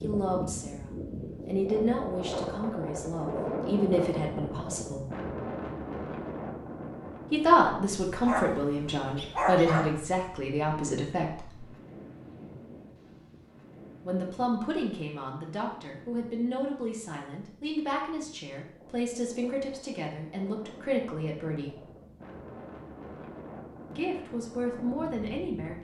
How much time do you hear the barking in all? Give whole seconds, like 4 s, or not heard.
2 s.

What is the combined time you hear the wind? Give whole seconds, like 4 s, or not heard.
26 s.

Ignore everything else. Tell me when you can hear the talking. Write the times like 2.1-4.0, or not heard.
0.0-5.0, 7.3-11.6, 14.1-21.8, 23.9-25.7.